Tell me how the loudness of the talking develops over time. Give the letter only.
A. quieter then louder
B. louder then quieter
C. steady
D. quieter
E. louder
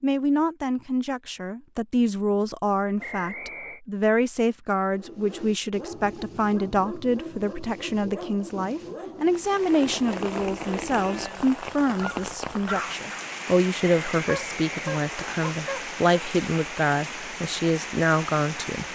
C.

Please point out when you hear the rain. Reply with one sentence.
You can hear the rain from 9.2 to 18.9 s.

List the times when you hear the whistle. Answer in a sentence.
You can hear the whistle from 3.0 to 3.8 s and from 14.1 to 15.3 s.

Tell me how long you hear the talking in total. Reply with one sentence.
The talking can be heard for 19 seconds in total.